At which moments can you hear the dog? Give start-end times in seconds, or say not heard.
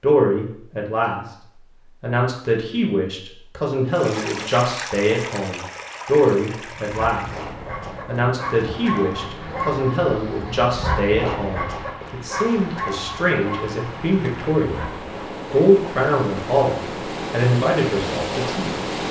6.5-15.3.